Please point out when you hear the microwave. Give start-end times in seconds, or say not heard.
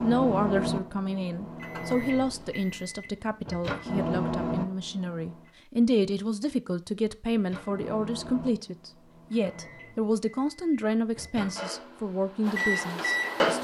0.0-5.5, 7.3-13.6.